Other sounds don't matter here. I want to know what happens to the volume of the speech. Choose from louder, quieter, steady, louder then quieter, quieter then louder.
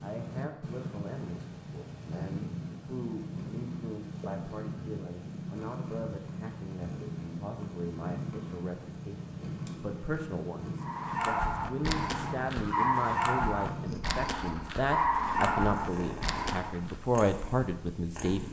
louder.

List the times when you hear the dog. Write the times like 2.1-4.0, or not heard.
10.8-17.0.